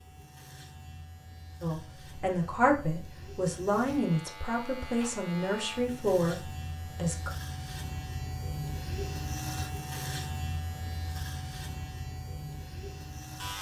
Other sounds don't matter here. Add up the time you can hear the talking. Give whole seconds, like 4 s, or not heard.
6 s.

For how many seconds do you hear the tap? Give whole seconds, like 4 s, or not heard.
not heard.